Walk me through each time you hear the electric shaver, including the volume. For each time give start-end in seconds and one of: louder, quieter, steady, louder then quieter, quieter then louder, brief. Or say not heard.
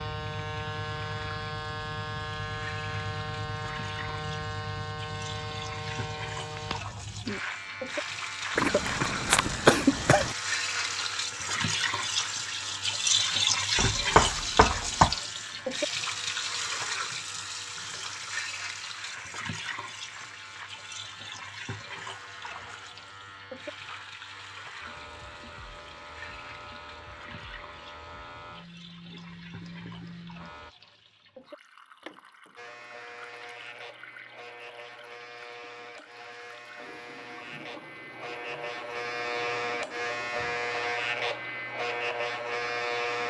0.0-30.8 quieter
32.5-43.2 louder.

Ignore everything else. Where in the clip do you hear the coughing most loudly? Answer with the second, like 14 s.
10 s.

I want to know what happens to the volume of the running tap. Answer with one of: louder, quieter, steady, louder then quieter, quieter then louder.
louder then quieter.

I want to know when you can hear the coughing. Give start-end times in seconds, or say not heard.
8.6-10.3.